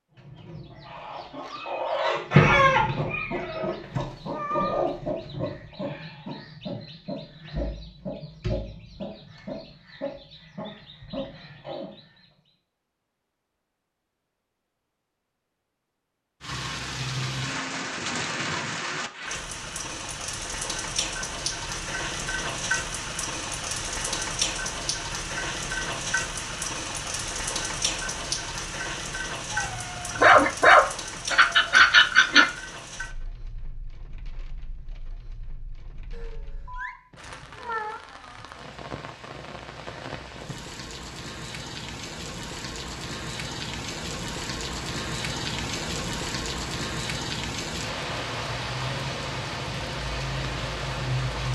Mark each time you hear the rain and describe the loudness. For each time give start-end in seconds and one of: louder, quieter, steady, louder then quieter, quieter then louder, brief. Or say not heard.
16.4-51.4 quieter then louder.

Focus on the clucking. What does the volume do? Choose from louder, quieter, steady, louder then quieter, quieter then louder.
quieter.